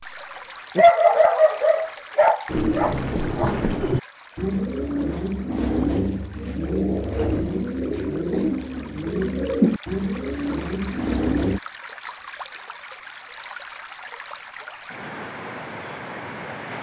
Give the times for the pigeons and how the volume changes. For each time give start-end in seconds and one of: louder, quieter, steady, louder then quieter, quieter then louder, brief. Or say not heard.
2.5-11.6 steady.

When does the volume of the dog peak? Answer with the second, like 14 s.
1 s.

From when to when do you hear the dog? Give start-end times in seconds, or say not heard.
0.8-3.5.